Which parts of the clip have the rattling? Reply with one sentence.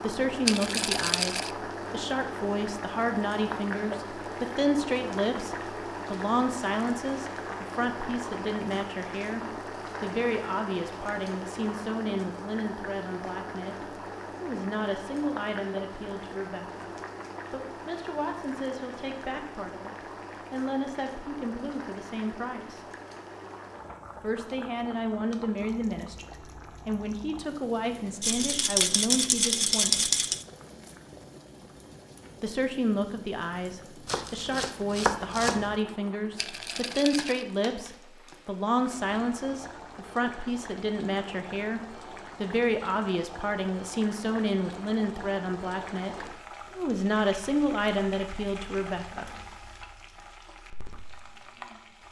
You can hear the rattling from 0.5 to 1.6 s, from 28.2 to 30.4 s and from 36.4 to 37.5 s.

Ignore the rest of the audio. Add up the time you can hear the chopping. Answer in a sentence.
The chopping can be heard for 2 seconds in total.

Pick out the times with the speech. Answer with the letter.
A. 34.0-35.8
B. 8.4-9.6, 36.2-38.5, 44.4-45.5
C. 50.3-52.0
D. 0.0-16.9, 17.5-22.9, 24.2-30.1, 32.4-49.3
D.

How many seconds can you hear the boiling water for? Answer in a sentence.
You can hear the boiling water for 52 seconds altogether.